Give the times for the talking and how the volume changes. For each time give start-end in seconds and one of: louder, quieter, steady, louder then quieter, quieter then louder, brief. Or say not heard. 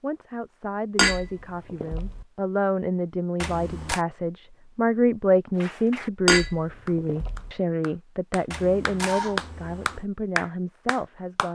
0.0-11.5 louder then quieter.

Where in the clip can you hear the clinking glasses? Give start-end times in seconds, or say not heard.
0.9-2.2, 6.2-7.5.